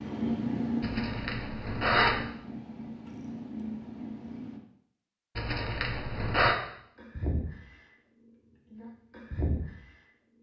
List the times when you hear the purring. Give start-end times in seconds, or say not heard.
0.0-4.6, 7.0-7.8, 8.7-9.8.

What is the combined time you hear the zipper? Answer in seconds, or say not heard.
3 s.